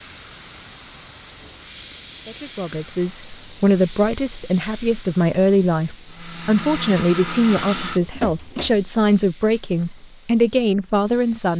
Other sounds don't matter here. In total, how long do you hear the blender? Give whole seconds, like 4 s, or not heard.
3 s.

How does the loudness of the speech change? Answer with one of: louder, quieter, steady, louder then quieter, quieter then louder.
steady.